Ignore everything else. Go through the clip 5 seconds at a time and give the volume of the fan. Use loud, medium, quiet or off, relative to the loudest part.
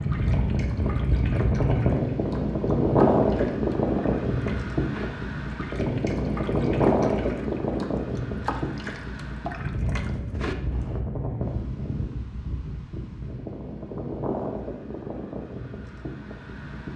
loud, loud, medium, quiet.